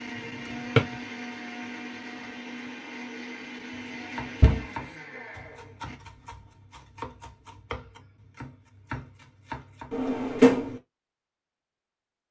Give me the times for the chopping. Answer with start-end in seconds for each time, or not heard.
3.7-10.1.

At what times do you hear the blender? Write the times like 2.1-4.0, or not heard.
0.0-6.0.